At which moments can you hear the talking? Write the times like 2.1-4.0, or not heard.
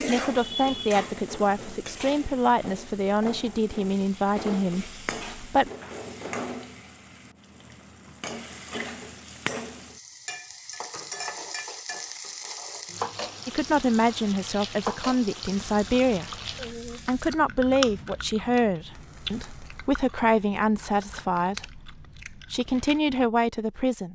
0.1-5.7, 13.4-16.4, 17.1-24.0.